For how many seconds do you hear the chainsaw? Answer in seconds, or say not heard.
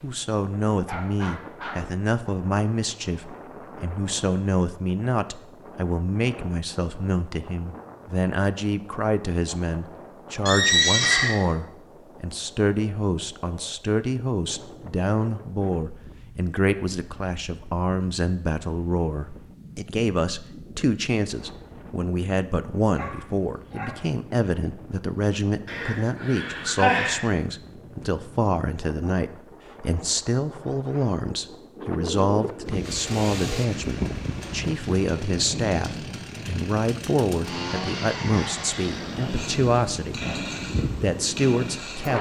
9 s.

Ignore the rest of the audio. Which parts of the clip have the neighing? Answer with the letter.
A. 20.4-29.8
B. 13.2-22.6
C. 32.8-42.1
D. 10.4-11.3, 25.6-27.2
D.